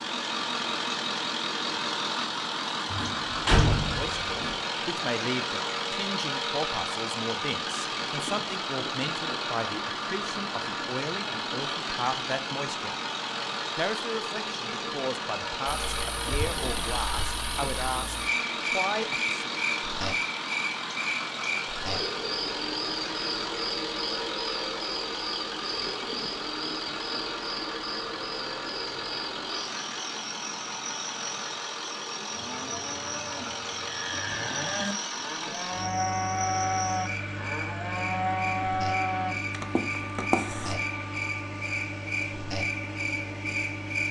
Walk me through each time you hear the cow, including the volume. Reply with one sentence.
The cow can be heard from 32.3 to 40.8 s, getting louder.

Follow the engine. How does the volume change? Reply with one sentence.
The volume of the engine goes down.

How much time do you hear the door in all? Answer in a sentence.
You can hear the door for 2 seconds altogether.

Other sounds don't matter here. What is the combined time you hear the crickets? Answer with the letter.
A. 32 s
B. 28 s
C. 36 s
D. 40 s
B.